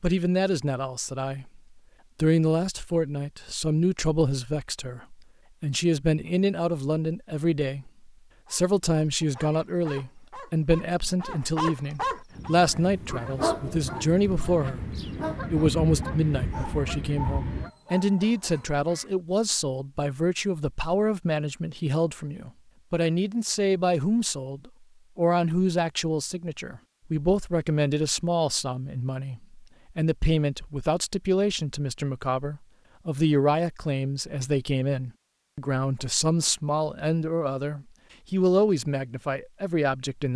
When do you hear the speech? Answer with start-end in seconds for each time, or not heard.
0.0-40.3.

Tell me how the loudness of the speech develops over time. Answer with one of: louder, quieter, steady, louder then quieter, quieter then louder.
steady.